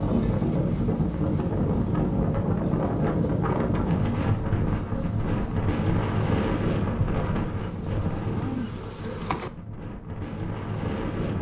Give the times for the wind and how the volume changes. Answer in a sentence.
The wind can be heard from 0.0 to 11.3 s, getting quieter.